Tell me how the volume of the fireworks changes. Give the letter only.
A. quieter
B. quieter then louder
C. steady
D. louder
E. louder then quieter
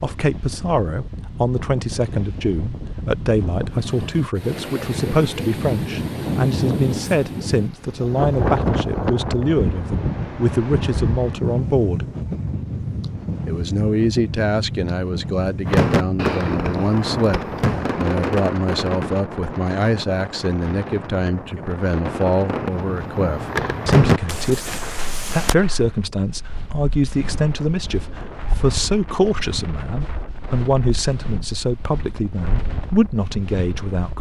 B.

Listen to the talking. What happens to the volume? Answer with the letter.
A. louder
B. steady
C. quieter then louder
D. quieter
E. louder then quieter
B.